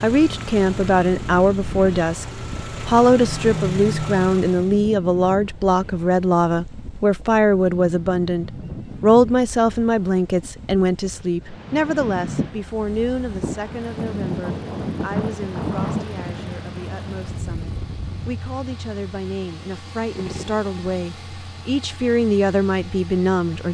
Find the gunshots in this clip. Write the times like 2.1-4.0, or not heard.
20.1-20.7.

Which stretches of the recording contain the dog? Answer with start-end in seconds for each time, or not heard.
not heard.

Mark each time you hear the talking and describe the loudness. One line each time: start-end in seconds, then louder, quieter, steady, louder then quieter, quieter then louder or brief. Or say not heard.
0.0-23.6 quieter then louder.